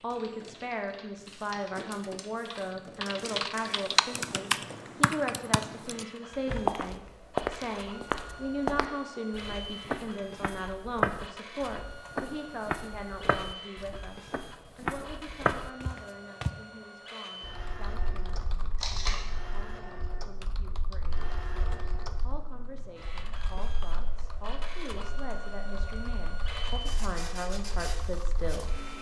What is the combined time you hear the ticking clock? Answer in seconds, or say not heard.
not heard.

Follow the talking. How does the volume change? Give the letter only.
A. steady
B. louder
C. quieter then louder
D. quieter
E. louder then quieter
C.